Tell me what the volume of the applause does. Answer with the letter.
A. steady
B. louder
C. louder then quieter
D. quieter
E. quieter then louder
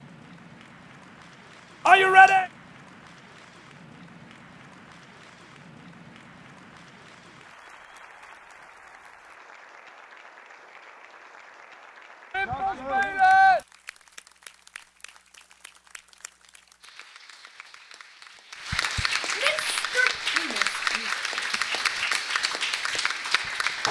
B.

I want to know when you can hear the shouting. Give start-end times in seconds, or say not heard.
1.9-2.5, 12.3-13.6, 19.4-21.1.